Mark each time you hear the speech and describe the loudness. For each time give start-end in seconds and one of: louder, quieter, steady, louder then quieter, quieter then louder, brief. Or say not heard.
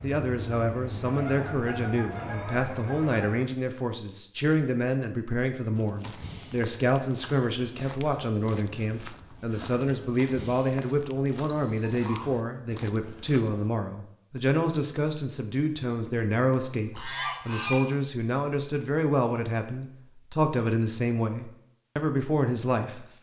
0.0-23.1 steady.